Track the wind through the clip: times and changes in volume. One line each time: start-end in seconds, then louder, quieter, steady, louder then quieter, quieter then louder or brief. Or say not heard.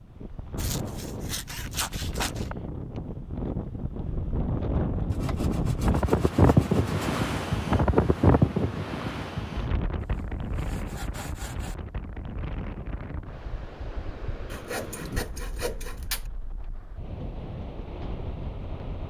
0.0-19.0 louder then quieter.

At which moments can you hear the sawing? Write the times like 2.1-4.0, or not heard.
0.6-2.5, 5.1-7.1, 10.0-11.8, 14.5-16.2.